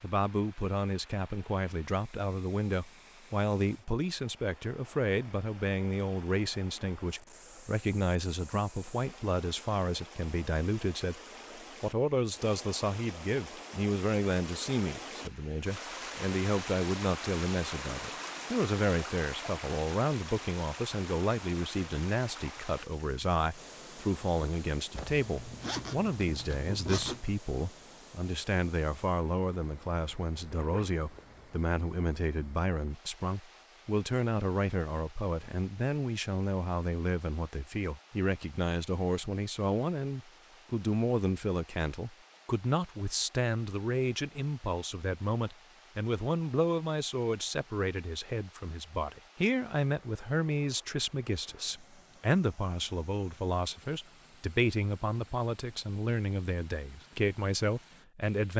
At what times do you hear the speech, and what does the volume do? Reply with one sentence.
The speech can be heard from 0.0 to 58.5 s, at a steady volume.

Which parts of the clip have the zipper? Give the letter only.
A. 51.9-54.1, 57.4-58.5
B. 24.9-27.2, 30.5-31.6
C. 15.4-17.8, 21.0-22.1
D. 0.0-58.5
B.